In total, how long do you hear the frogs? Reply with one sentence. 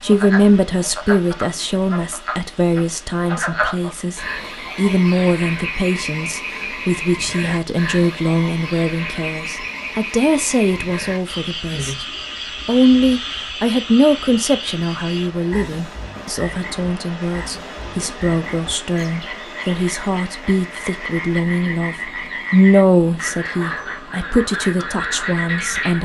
You can hear the frogs for 26 seconds altogether.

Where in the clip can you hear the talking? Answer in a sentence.
You can hear the talking from 0.0 to 12.1 s and from 12.7 to 26.0 s.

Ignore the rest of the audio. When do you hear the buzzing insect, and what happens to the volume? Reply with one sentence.
You can't hear the buzzing insect here.